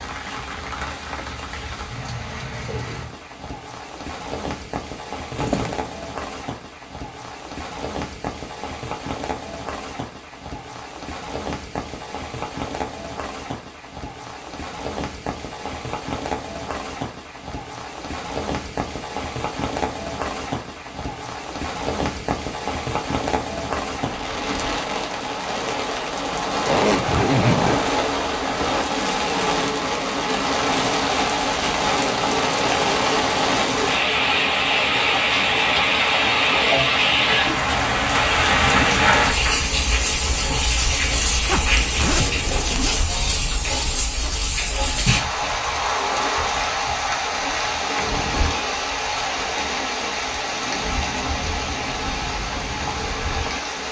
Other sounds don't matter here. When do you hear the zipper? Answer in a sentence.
The zipper can be heard from 5.3 to 5.9 s, from 26.6 to 27.9 s and from 41.5 to 43.0 s.